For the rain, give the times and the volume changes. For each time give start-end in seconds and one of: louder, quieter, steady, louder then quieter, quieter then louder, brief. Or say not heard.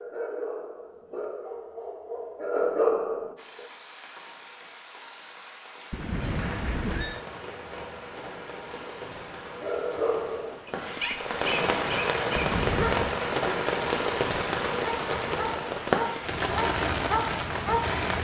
3.4-18.1 louder.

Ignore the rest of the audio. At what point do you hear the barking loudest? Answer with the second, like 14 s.
3 s.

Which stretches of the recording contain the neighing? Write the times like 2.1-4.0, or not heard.
5.9-7.2, 12.3-13.2.